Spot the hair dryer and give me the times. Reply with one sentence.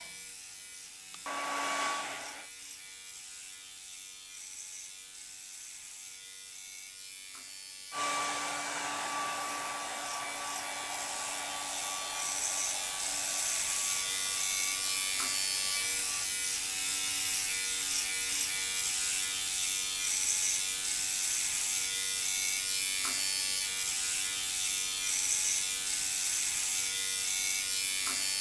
The hair dryer can be heard from 0.0 to 2.5 s and from 7.9 to 16.3 s.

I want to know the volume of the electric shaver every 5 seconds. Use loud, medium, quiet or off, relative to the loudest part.
quiet, quiet, loud, loud, loud, loud.